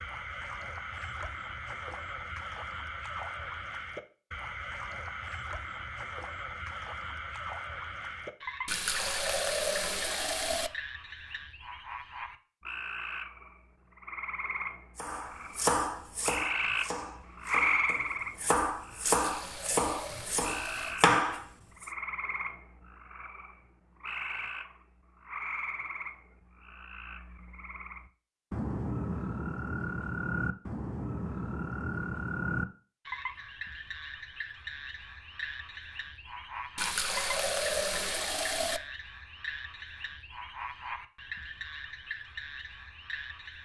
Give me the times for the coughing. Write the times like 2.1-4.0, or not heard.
not heard.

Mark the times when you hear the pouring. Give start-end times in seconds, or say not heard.
8.7-10.7, 19.0-21.0, 36.8-38.8.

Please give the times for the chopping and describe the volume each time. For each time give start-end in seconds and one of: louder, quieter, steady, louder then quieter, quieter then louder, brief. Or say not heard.
14.9-21.9 quieter then louder.